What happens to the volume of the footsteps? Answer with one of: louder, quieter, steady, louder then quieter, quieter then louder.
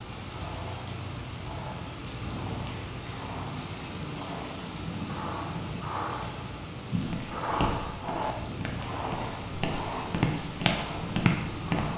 quieter then louder.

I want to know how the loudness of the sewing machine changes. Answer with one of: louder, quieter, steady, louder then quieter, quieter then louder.
louder then quieter.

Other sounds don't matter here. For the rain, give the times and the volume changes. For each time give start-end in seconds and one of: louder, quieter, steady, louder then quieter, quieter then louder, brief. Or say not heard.
0.0-11.9 steady.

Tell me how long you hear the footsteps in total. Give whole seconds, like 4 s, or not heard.
5 s.